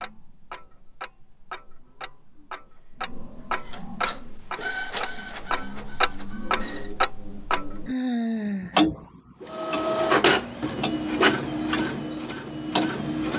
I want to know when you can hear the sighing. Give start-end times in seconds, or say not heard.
7.8-8.8.